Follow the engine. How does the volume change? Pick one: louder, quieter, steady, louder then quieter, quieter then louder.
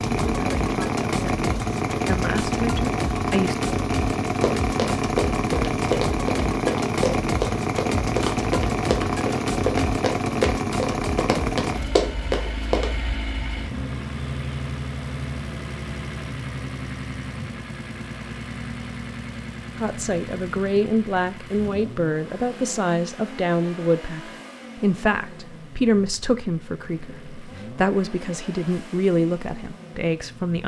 quieter.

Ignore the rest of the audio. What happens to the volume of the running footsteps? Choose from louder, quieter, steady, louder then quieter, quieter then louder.
steady.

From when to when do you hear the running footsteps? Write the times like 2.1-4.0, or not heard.
4.4-12.9.